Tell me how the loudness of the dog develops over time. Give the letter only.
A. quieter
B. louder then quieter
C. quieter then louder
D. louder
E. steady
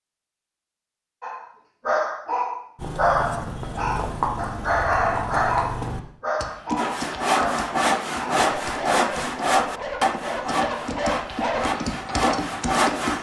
A.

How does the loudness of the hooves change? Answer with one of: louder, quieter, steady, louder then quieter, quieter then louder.
quieter then louder.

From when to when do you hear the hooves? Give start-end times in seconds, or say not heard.
2.8-13.1.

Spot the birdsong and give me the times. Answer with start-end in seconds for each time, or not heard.
not heard.